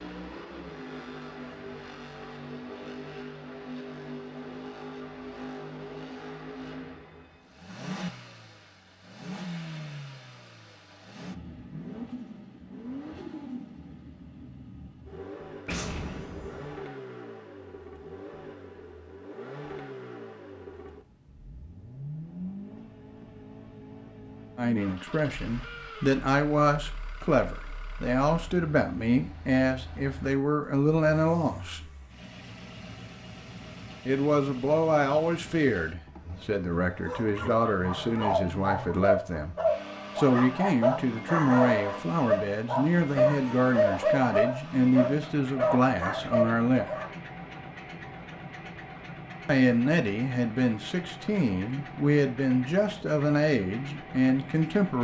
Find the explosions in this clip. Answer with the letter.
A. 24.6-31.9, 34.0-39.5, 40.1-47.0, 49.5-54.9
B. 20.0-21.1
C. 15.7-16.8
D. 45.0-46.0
C.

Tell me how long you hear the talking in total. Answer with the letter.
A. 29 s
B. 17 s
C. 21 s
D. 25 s
D.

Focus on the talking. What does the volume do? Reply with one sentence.
The volume of the talking stays about the same.